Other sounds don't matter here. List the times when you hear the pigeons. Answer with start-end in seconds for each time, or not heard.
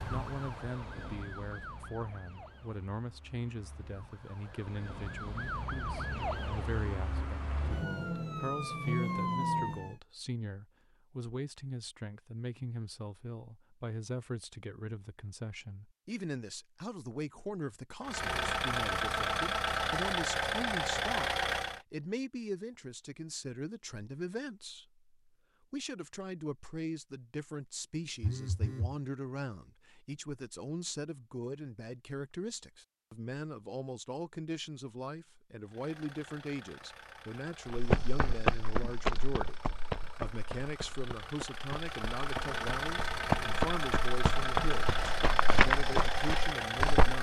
not heard.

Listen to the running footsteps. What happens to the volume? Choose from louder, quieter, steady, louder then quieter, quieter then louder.
quieter then louder.